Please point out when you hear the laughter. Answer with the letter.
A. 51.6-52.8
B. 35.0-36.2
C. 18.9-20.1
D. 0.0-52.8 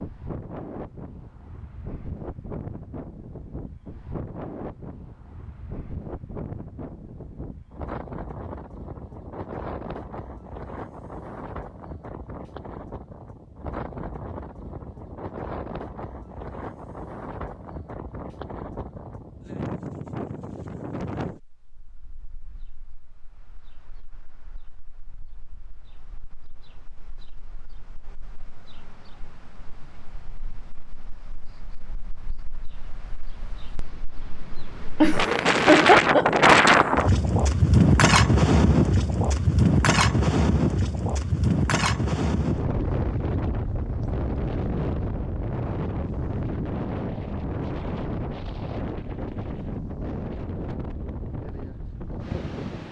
B.